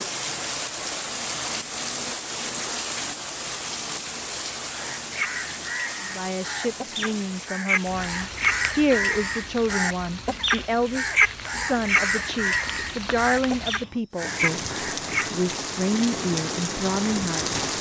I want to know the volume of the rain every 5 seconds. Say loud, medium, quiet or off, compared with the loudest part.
loud, medium, medium, loud.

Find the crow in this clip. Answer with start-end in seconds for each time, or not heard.
4.7-15.3.